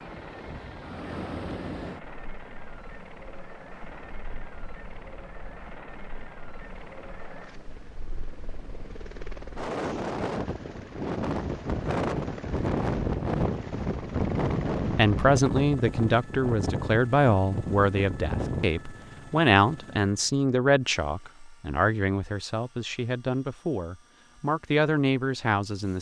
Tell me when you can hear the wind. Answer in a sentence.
You can hear the wind from 0.0 to 18.6 s.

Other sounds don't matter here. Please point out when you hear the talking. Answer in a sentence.
You can hear the talking from 14.9 to 25.9 s.